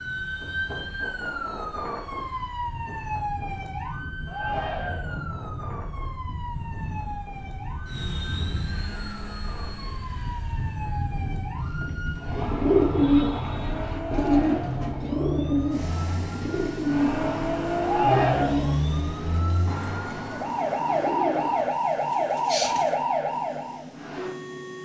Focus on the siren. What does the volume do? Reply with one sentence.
The volume of the siren goes down, then up.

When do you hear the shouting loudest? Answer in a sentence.
The loudest moment of the shouting is at 18 seconds.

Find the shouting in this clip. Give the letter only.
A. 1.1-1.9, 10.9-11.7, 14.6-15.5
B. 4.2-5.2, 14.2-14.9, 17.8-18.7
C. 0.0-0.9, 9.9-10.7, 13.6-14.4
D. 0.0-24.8
B.